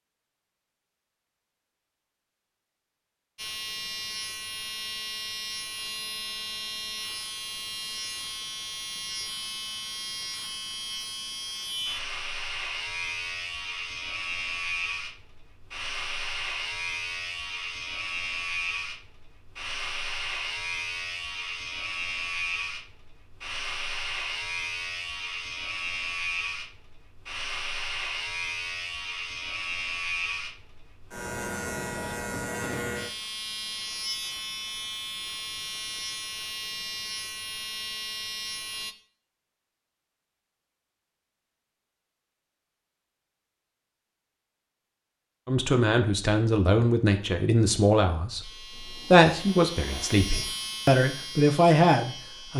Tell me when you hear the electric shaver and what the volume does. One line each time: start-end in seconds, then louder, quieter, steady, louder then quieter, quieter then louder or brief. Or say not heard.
3.4-39.0 steady
48.4-52.5 louder then quieter.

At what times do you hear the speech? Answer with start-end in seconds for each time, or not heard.
45.5-52.5.